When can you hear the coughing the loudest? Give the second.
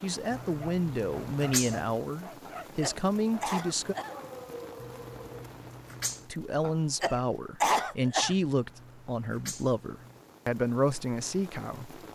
8 s.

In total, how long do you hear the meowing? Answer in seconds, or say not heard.
5 s.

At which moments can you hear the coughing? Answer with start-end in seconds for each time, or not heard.
2.5-4.2, 6.6-8.3.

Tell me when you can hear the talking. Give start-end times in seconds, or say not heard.
0.0-4.0, 6.3-12.0.